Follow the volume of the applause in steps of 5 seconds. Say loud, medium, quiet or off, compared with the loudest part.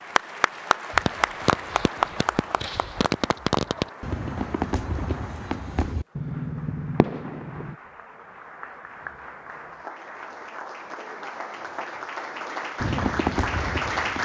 loud, quiet, loud.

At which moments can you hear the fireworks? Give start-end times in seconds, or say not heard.
0.9-7.8, 12.8-14.2.